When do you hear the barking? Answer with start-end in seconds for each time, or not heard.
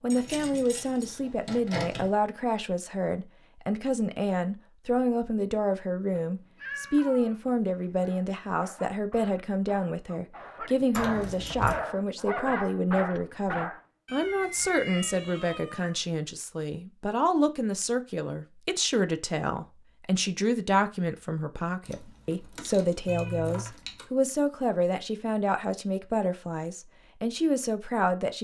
8.0-13.8.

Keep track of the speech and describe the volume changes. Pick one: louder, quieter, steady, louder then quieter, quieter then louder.
steady.